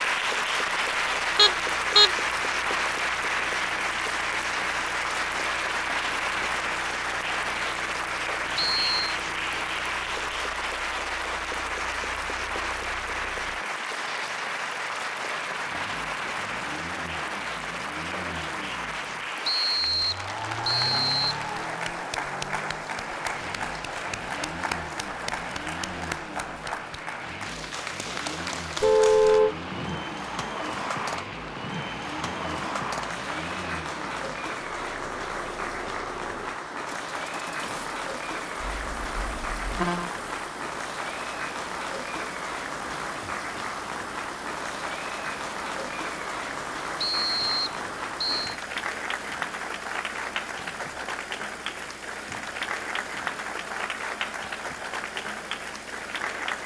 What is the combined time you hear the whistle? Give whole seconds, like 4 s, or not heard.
4 s.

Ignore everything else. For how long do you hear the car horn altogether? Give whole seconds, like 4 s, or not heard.
3 s.